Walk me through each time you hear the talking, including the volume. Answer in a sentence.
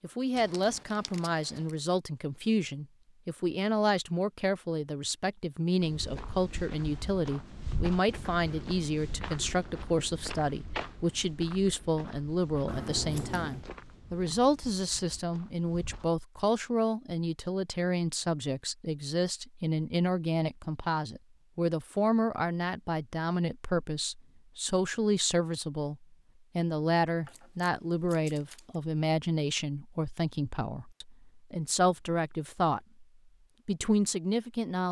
The talking can be heard from 0.0 to 32.8 s, at a steady volume; and briefly from 33.6 to 34.8 s.